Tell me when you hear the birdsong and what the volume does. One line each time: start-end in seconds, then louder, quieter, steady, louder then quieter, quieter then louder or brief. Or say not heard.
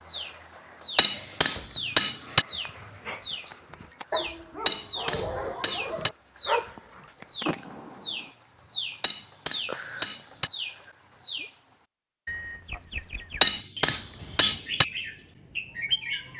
0.0-16.3 steady.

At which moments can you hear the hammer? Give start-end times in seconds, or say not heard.
0.9-2.5, 4.7-6.1, 9.0-10.5, 13.4-14.8.